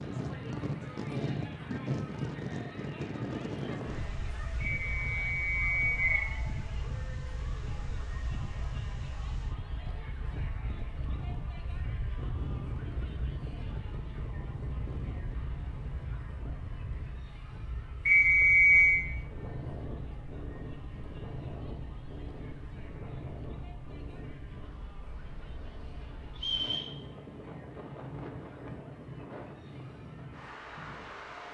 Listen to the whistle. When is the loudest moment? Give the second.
19 s.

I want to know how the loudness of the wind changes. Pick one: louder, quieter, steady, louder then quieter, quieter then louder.
quieter.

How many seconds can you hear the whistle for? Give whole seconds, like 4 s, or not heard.
3 s.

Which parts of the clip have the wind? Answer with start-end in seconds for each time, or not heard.
0.0-31.5.